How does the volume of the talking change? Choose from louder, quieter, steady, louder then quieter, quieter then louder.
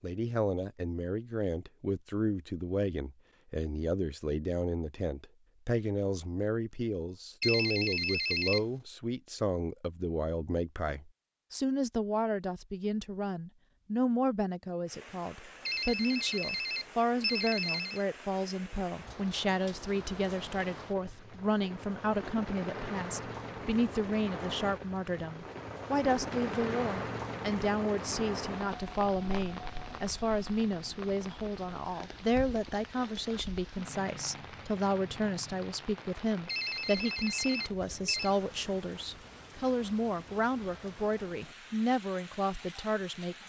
steady.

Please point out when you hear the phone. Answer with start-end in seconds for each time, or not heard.
7.4-8.7, 15.7-18.0, 36.5-38.4.